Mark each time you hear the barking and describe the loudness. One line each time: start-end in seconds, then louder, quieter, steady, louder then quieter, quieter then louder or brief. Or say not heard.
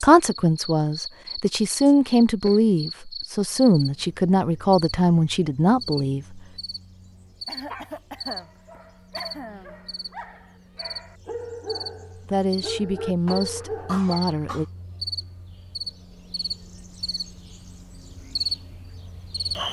7.7-14.0 louder.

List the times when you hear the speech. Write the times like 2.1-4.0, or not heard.
0.0-6.4, 12.3-14.7.